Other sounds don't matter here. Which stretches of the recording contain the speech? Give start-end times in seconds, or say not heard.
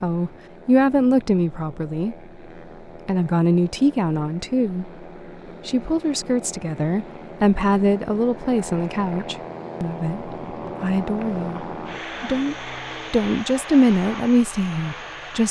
0.0-2.1, 3.0-4.9, 5.7-15.4.